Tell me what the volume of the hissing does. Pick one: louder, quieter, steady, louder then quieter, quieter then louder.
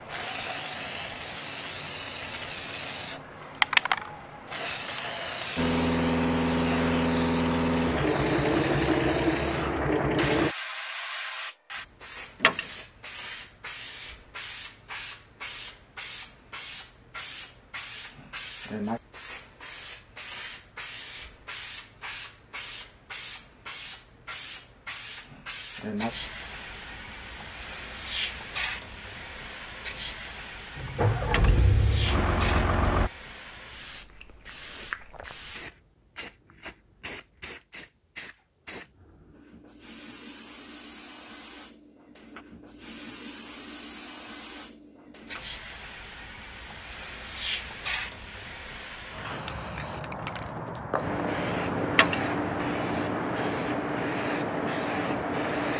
quieter then louder.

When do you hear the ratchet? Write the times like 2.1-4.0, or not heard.
not heard.